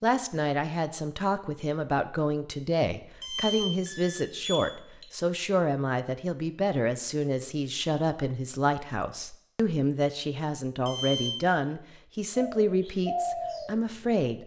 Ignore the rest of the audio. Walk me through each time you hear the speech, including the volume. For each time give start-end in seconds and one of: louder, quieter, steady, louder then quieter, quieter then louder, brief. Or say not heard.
0.0-14.4 steady.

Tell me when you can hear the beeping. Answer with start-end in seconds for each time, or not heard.
3.2-5.0, 10.8-11.6.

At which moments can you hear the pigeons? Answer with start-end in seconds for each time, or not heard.
12.3-14.2.